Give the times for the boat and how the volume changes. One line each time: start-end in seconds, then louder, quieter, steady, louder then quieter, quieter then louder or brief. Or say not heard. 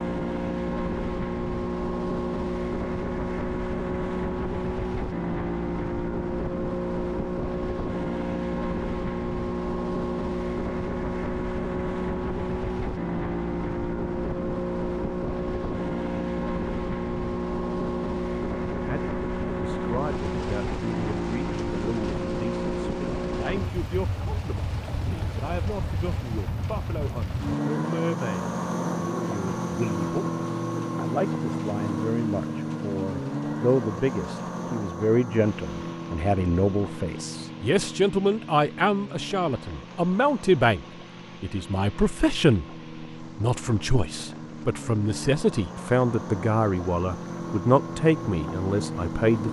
0.0-49.4 quieter.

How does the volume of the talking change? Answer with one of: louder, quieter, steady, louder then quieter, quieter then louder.
louder.